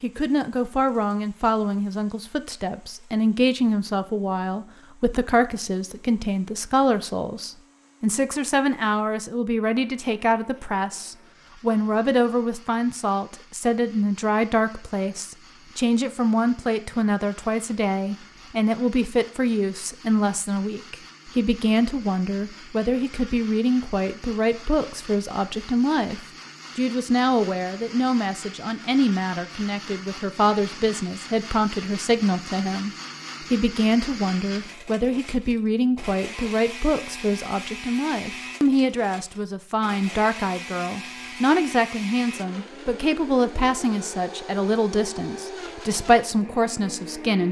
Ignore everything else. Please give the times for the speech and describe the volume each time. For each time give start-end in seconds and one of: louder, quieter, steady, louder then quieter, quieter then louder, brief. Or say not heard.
0.0-47.4 steady.